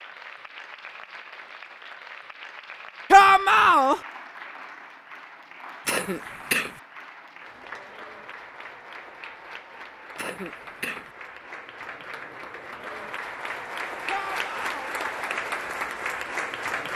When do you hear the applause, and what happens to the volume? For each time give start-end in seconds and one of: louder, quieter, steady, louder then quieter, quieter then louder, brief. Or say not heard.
0.0-16.9 louder.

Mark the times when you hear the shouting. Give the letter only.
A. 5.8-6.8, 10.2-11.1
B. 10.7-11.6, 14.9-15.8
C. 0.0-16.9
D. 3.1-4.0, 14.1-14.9
D.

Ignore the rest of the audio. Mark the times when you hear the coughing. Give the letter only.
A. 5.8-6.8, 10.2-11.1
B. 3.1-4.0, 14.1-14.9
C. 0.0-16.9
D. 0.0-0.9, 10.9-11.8
A.